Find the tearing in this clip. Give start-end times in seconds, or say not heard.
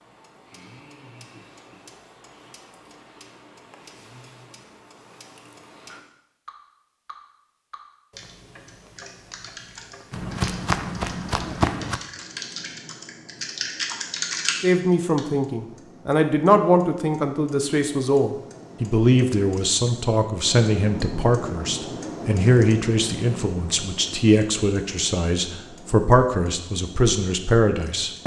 not heard.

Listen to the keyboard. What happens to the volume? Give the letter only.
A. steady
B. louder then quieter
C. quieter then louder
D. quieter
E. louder
E.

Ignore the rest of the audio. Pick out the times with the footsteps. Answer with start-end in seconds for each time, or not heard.
10.1-12.0.